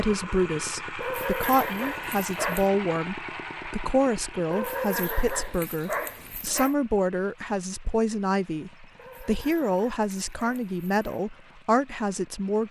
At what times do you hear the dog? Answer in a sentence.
You can hear the dog from 1.0 to 2.7 s, from 4.5 to 6.8 s and from 8.9 to 11.2 s.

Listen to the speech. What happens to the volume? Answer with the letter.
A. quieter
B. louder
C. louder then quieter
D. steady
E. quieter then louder
D.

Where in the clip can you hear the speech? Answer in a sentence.
The speech can be heard from 0.0 to 12.6 s.